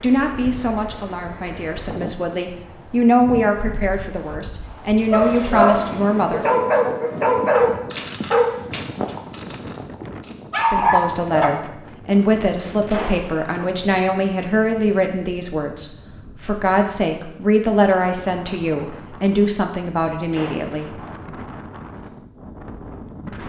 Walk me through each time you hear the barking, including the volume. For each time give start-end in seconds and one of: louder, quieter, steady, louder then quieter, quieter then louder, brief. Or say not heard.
5.1-11.5 quieter then louder.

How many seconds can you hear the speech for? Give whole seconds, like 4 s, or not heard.
17 s.